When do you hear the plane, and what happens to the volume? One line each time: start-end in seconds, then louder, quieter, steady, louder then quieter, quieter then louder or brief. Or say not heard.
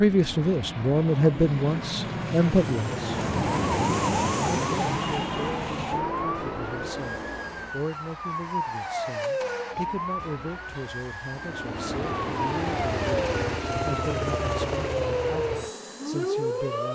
0.0-7.9 louder then quieter
11.3-16.9 quieter.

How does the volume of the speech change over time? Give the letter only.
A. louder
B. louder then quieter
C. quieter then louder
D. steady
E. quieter
E.